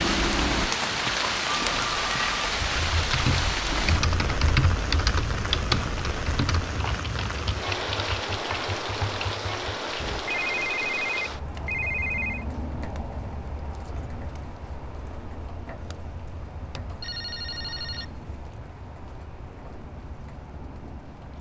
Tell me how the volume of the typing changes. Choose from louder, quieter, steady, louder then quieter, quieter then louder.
quieter.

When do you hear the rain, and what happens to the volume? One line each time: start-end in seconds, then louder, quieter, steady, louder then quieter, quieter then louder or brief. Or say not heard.
0.0-21.3 quieter.